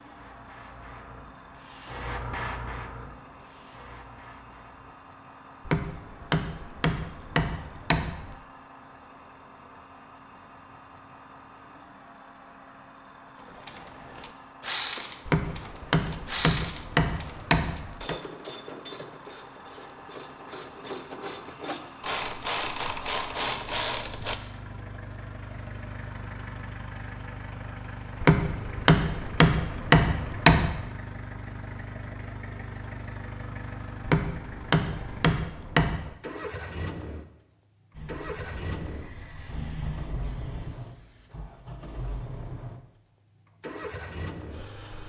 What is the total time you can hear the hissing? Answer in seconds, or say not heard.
8 s.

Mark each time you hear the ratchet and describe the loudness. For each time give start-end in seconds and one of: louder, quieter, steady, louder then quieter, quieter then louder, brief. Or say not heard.
13.4-24.4 quieter then louder.